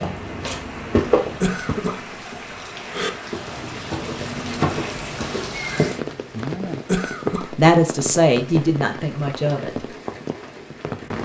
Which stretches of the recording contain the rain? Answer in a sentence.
The rain can be heard from 0.0 to 11.2 s.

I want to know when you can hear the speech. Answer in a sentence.
You can hear the speech from 7.4 to 9.9 s.